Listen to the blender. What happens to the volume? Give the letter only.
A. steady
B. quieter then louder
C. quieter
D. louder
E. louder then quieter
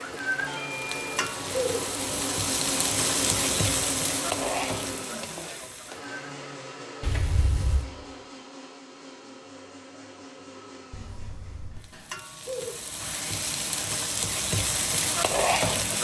C.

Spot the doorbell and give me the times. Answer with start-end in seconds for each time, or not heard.
0.5-1.1, 7.0-7.8, 10.9-11.9.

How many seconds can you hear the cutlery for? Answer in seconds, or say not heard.
not heard.